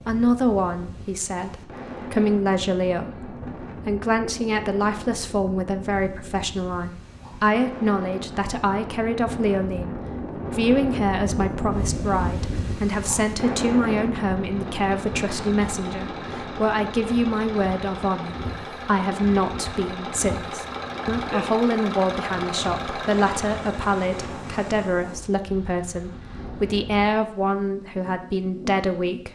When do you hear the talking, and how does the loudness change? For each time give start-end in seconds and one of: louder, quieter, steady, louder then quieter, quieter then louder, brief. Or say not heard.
0.1-29.3 steady.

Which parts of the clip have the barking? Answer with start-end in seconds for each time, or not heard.
not heard.